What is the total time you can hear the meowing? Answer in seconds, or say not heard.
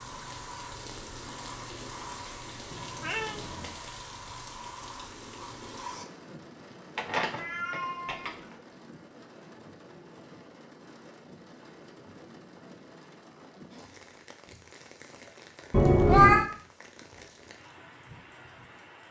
3 s.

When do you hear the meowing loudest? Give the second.
16 s.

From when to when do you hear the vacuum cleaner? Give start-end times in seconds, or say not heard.
0.0-6.0.